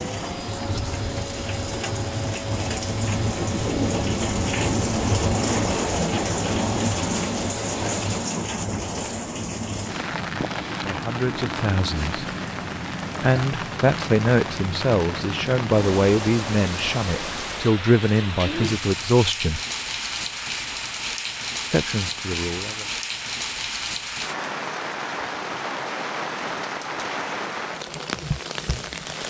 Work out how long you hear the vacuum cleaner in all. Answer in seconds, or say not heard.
8 s.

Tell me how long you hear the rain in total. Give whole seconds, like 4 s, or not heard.
29 s.